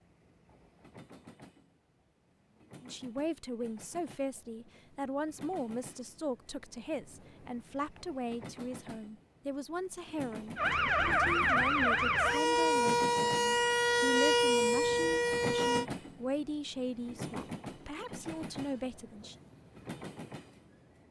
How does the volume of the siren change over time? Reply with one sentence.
The volume of the siren stays about the same.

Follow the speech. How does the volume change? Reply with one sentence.
The volume of the speech stays about the same.